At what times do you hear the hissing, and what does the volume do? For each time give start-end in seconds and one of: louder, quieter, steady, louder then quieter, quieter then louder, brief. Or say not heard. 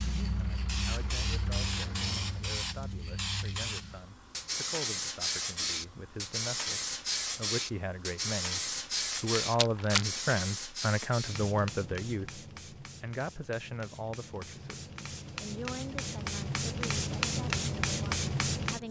0.0-18.8 quieter then louder.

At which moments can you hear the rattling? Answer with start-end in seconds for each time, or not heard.
9.1-10.1.